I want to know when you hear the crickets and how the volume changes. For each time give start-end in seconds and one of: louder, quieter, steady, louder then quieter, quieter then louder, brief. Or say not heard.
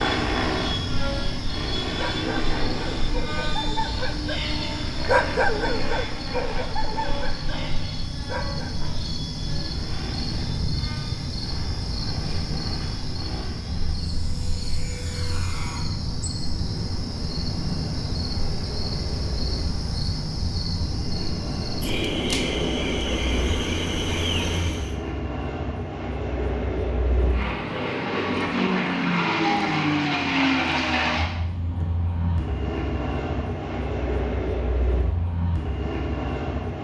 0.0-25.0 louder.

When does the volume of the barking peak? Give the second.
5 s.